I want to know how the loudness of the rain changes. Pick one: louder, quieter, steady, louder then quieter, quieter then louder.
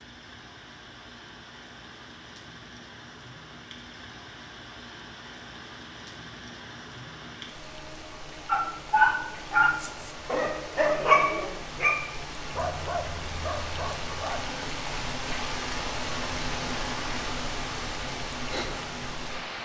louder.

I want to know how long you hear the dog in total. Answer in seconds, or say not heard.
6 s.